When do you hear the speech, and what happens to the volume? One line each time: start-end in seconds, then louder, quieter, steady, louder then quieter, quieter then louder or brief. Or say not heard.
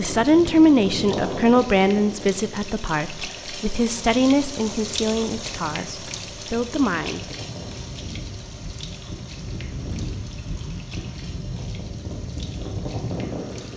0.0-7.2 quieter.